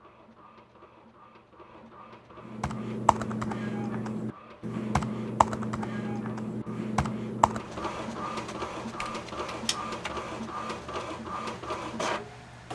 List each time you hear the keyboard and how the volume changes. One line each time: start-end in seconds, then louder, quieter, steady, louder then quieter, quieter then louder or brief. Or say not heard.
2.5-9.3 quieter.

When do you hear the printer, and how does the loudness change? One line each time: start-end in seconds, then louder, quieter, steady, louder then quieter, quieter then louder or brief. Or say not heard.
0.0-12.7 louder.